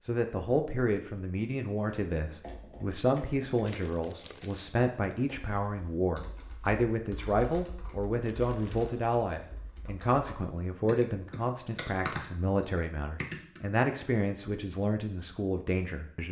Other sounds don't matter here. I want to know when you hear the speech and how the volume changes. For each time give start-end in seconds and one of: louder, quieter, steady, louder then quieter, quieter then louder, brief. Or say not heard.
0.1-16.2 steady.